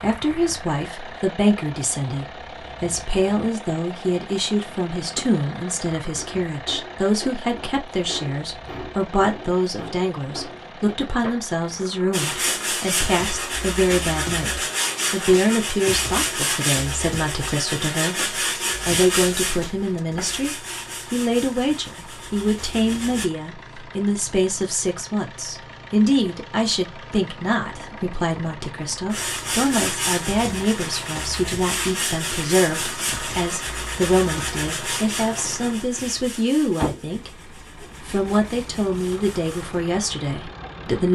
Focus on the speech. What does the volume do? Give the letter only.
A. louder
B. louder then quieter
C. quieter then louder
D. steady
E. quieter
D.